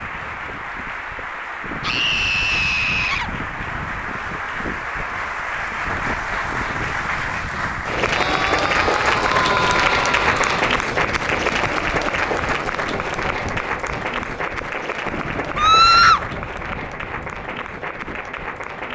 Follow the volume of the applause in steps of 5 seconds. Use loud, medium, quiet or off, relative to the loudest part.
medium, loud, loud, medium.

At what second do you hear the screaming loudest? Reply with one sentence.
The volume of the screaming peaks at 16 seconds.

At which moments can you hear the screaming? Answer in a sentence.
The screaming can be heard from 1.8 to 3.3 s, from 8.1 to 10.8 s and from 15.6 to 16.2 s.